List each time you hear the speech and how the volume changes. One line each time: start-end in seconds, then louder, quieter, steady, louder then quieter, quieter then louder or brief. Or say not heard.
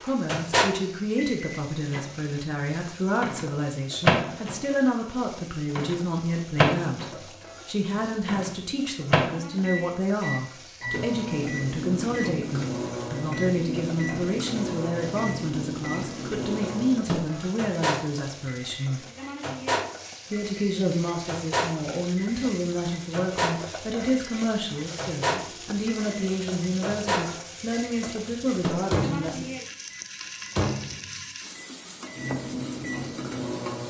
0.0-19.0 steady
20.3-29.4 steady.